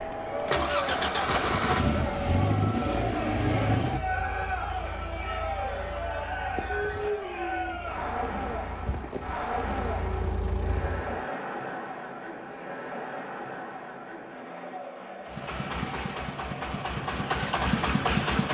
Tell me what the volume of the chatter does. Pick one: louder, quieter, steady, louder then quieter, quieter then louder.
quieter.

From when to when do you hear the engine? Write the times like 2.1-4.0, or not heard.
0.0-11.2, 15.2-18.4.